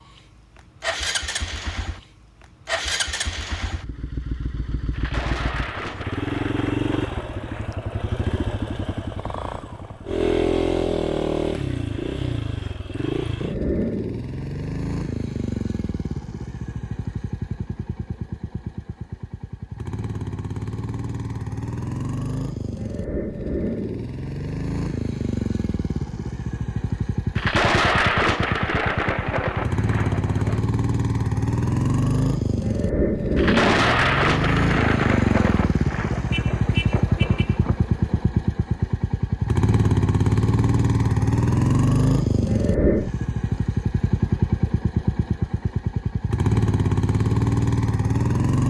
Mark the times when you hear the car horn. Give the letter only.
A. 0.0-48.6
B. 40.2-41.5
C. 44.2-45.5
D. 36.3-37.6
D.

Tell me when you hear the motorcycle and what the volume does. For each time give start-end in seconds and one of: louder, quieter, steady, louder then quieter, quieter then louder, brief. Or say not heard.
0.0-48.6 louder.